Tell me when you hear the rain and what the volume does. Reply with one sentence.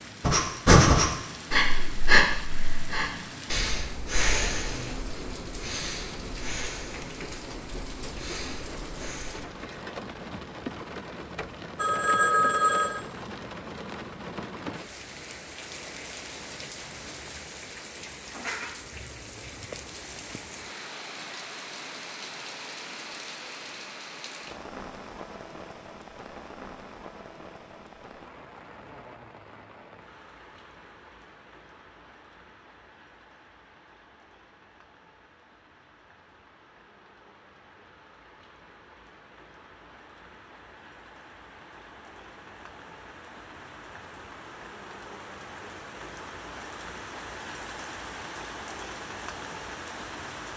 You can hear the rain from 0.0 to 50.5 s, getting quieter then louder.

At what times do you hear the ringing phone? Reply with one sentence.
The ringing phone can be heard from 11.8 to 13.0 s.